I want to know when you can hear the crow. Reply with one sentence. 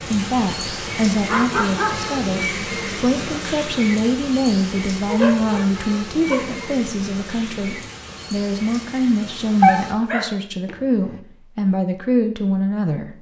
The crow can't be heard in this clip.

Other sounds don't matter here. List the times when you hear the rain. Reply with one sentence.
You can hear the rain from 0.0 to 9.9 s.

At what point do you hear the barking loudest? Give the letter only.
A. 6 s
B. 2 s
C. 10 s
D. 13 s
C.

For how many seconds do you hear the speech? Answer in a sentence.
You can hear the speech for 13 seconds altogether.